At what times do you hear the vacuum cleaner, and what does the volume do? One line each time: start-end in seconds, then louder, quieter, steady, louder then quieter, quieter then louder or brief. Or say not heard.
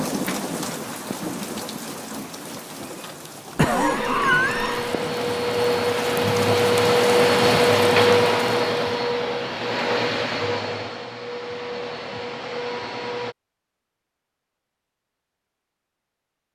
3.5-13.3 louder then quieter.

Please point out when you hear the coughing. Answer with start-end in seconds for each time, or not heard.
3.5-4.9.